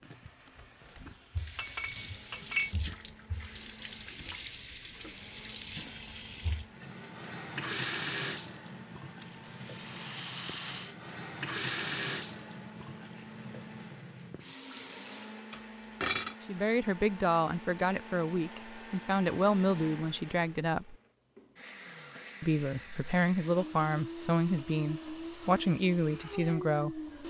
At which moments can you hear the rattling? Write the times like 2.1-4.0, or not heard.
9.2-10.9.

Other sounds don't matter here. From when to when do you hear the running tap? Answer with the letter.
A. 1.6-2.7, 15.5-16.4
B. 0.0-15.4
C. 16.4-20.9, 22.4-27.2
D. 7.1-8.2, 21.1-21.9
B.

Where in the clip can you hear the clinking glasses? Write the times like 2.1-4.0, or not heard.
1.6-2.7, 15.5-16.4.